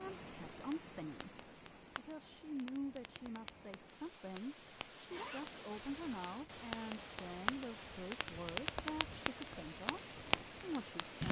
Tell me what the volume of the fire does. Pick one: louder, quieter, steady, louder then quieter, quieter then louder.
louder.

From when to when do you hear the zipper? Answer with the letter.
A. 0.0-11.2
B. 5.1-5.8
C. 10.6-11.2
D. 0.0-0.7
B.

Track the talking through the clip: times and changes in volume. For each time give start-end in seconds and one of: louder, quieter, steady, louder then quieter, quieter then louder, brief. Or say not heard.
0.0-11.2 steady.